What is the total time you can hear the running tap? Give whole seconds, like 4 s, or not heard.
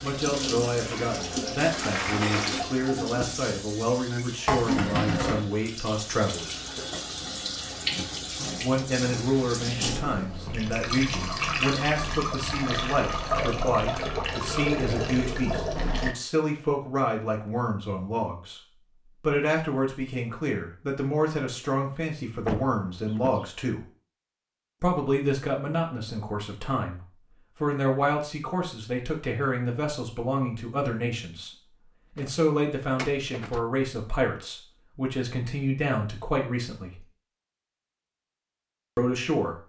16 s.